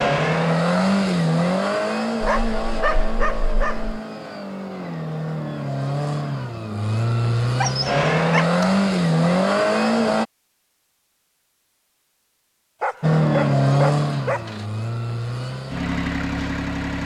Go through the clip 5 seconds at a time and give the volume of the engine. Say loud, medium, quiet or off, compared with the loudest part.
loud, loud, loud, medium.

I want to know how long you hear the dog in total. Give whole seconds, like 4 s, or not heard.
5 s.